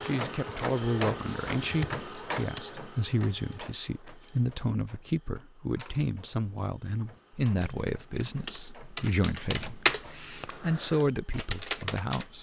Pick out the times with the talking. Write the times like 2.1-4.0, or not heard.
0.1-12.3.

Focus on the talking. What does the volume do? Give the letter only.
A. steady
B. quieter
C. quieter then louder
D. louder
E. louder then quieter
A.